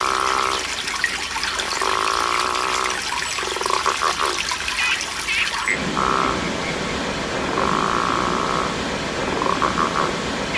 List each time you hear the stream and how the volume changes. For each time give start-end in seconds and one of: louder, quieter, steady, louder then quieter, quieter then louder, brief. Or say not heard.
0.0-10.5 steady.